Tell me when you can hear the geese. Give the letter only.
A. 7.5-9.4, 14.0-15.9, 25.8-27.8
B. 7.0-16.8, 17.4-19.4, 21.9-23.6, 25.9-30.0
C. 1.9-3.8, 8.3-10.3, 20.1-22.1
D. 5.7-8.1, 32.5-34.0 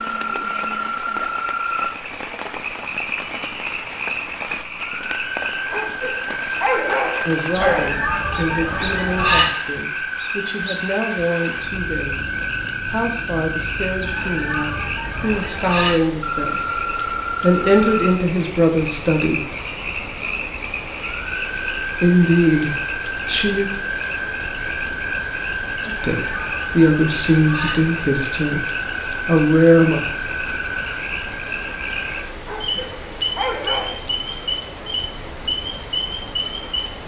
A.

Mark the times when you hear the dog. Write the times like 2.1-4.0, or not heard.
5.7-8.1, 32.5-34.0.